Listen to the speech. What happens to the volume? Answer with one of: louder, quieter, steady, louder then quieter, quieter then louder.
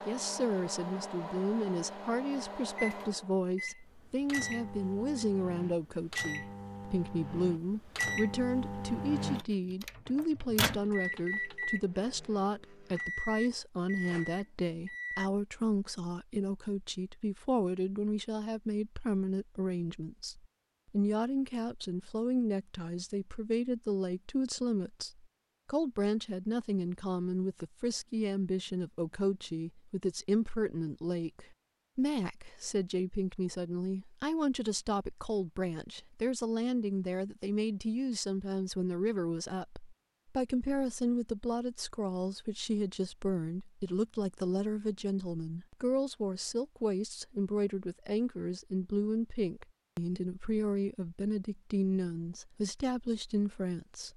steady.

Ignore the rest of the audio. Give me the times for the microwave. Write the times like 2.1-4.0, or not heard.
0.0-15.3.